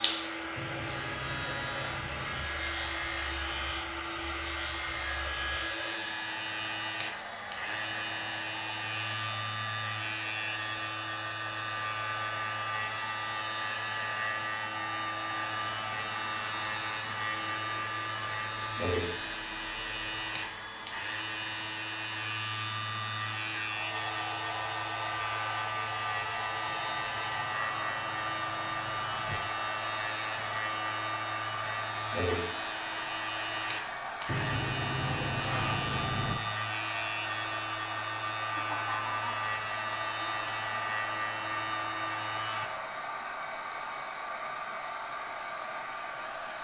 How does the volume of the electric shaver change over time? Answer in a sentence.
The volume of the electric shaver stays about the same.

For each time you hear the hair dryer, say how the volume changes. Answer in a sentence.
The hair dryer can be heard from 0.0 to 46.5 s, at a steady volume.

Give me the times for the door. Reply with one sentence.
The door can be heard from 0.6 to 2.5 s, from 26.6 to 29.4 s and from 34.2 to 36.4 s.